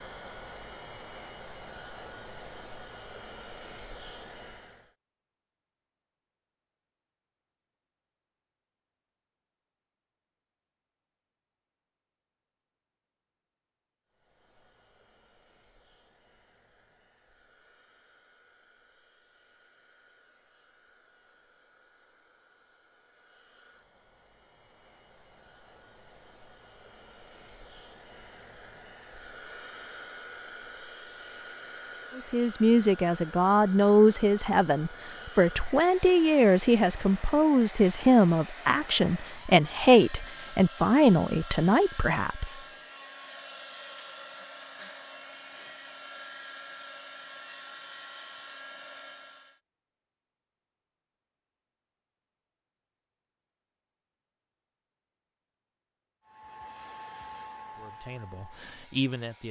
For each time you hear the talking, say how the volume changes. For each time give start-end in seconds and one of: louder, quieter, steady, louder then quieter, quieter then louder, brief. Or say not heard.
32.1-42.5 steady
57.8-59.4 brief.